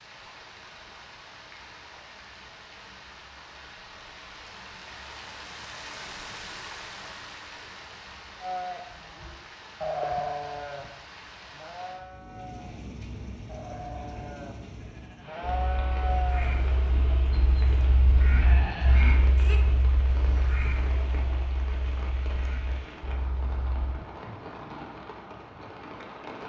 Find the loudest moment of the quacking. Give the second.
19 s.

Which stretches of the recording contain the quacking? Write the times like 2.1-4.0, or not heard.
15.4-23.9.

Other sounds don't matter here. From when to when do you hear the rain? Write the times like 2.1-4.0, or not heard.
0.0-26.4.